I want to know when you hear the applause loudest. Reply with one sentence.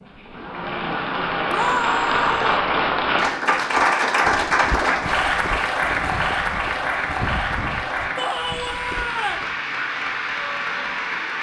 The volume of the applause peaks at 4 seconds.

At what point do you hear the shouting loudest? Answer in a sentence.
The volume of the shouting peaks at 2 seconds.